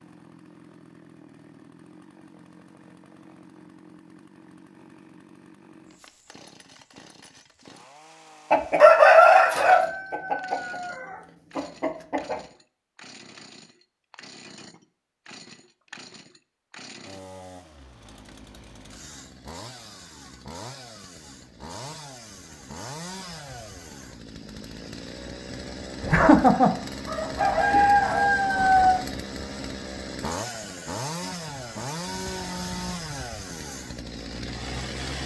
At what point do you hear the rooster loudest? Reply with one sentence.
The loudest moment of the rooster is at 9 seconds.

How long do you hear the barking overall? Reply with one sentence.
The barking can't be heard in this clip.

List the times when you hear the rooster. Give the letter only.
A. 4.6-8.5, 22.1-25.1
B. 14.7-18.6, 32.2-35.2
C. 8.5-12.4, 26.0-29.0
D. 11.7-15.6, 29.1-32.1
C.